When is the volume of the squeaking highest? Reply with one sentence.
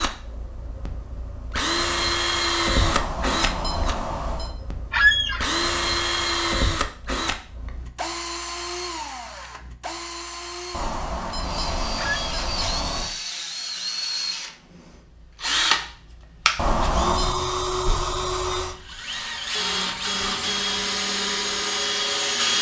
The loudest moment of the squeaking is at 5 seconds.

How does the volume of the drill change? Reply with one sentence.
The volume of the drill goes down, then up.